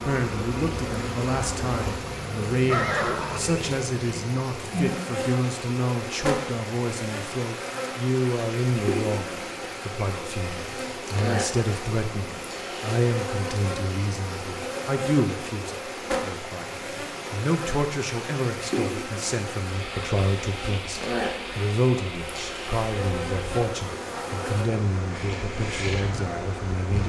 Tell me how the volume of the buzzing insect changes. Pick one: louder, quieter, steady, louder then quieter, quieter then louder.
steady.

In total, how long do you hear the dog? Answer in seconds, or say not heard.
not heard.